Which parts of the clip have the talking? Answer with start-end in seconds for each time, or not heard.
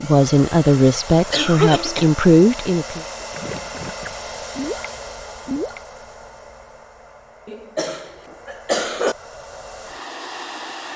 0.0-3.0.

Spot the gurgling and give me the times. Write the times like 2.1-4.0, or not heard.
3.2-5.8.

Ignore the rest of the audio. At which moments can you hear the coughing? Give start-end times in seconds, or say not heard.
1.3-2.1, 7.5-9.2.